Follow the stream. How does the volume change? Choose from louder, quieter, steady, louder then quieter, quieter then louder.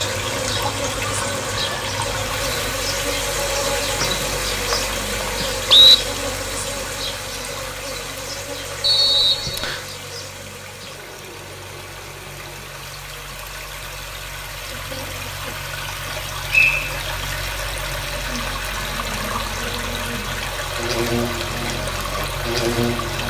quieter then louder.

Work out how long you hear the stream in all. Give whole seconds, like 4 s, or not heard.
23 s.